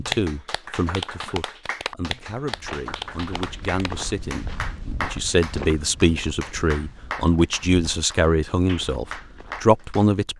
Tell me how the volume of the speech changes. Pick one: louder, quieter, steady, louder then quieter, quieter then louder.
louder.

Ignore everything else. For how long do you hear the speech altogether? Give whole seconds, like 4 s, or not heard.
10 s.